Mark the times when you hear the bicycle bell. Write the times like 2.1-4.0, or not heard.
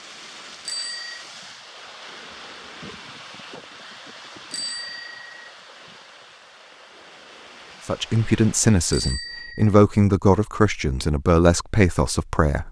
0.7-1.2, 4.5-5.3, 8.9-9.8.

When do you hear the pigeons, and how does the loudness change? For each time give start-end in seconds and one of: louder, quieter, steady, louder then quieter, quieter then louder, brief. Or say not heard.
not heard.